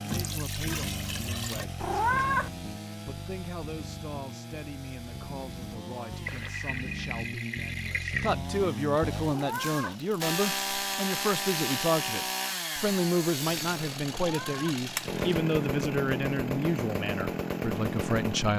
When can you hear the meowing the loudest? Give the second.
2 s.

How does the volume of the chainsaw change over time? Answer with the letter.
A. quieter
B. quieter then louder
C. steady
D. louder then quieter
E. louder
E.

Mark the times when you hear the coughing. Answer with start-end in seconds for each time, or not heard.
not heard.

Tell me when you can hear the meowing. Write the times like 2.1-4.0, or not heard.
1.8-2.5, 9.2-9.9, 14.1-14.8.